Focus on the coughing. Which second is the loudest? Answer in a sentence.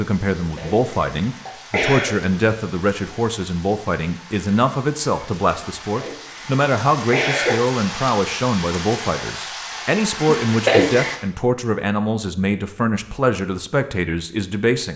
The volume of the coughing peaks at 11 seconds.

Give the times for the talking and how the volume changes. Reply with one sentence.
You can hear the talking from 0.0 to 14.9 s, at a steady volume.